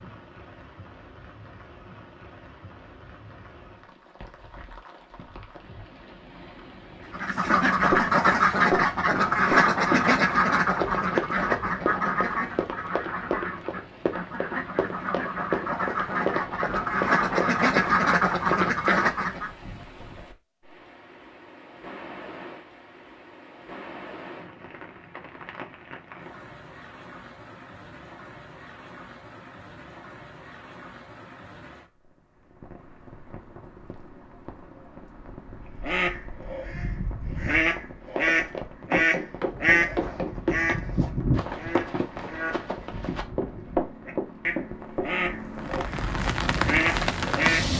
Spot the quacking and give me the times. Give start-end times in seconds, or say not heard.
7.1-19.5, 35.8-47.6.